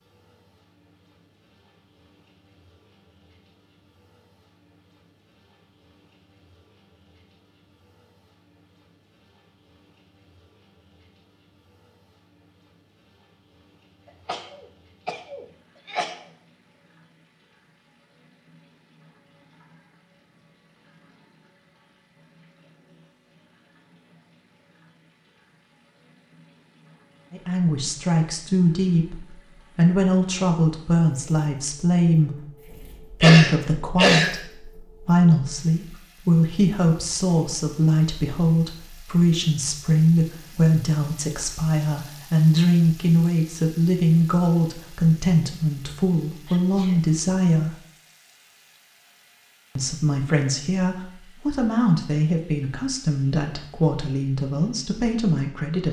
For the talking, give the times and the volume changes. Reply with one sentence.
The talking can be heard from 27.3 to 47.8 s, at a steady volume; and from 49.8 to 55.8 s, at a steady volume.